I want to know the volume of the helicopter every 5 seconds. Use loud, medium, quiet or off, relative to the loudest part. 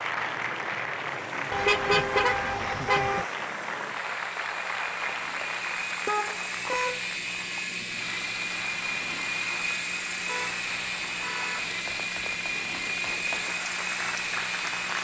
medium, loud, loud.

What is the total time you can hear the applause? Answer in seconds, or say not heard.
15 s.